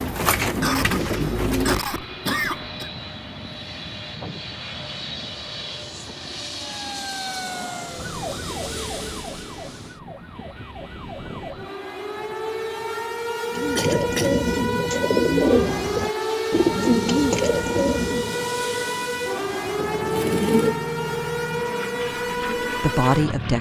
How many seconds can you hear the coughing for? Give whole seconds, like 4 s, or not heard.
3 s.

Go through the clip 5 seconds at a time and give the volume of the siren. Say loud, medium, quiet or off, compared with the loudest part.
off, medium, loud, loud, loud.